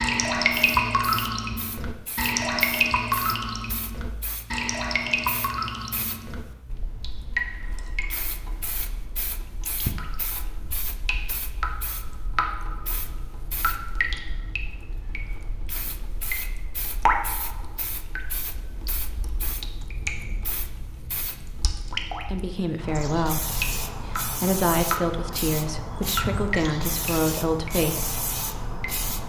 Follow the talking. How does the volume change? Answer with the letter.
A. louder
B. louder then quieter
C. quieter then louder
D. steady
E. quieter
D.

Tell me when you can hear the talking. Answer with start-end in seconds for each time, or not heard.
22.2-28.3.